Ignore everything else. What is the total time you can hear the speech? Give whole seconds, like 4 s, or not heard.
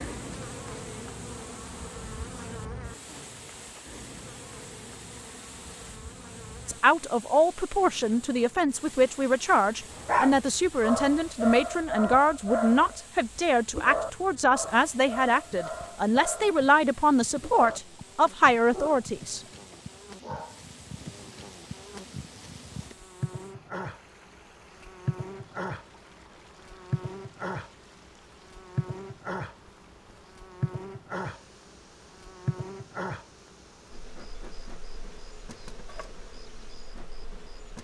13 s.